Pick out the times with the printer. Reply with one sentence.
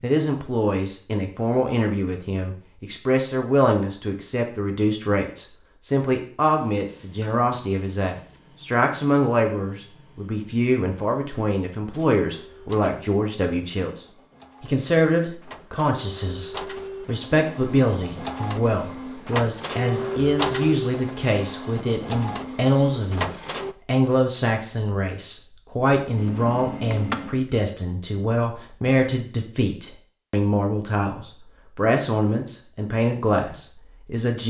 You can hear the printer from 6.5 to 23.8 s.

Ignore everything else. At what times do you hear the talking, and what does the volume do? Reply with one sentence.
The talking can be heard from 0.0 to 34.4 s, at a steady volume.